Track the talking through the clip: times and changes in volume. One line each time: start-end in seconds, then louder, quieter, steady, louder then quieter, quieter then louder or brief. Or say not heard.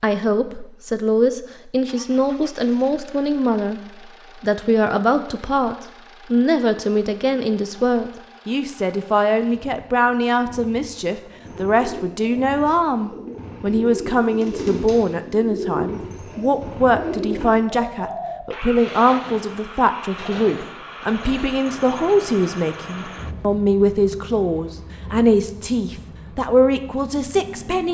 0.0-27.8 steady.